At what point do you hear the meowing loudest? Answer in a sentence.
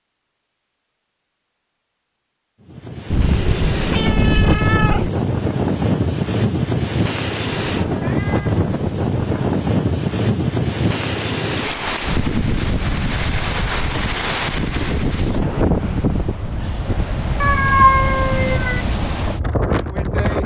The loudest moment of the meowing is at 18 seconds.